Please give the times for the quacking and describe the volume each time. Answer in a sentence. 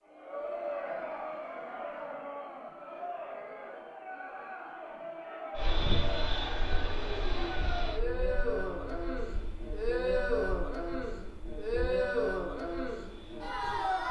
You can't hear the quacking here.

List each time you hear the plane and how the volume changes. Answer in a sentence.
The plane can be heard from 5.5 to 14.0 s, getting quieter.